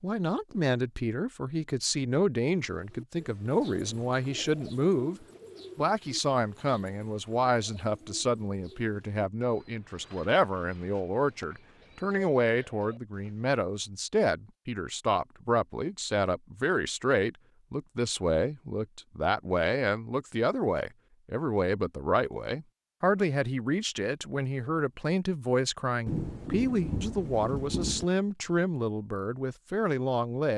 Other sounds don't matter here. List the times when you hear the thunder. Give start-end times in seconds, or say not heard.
26.1-28.1.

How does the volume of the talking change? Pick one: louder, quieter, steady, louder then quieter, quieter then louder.
steady.